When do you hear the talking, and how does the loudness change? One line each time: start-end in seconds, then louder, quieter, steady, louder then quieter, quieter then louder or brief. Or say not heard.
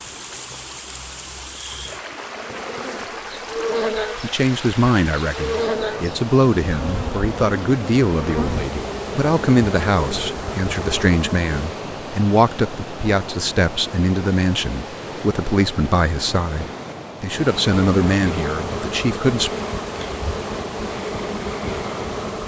4.2-19.5 steady.